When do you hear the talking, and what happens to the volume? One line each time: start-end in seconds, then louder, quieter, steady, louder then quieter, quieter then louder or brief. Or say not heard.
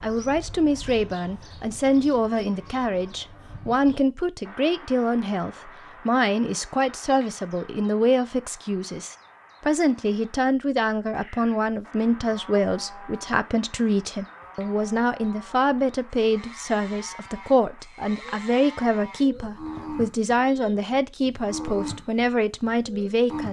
0.0-23.4 steady.